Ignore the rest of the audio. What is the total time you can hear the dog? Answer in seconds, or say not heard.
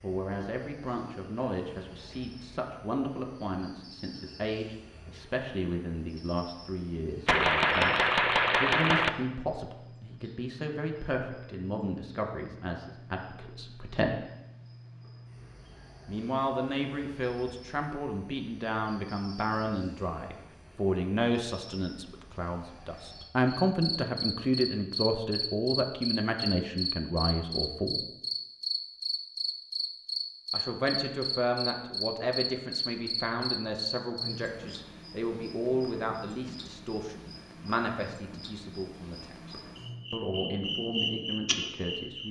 not heard.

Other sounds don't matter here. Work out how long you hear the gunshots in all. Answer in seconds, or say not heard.
2 s.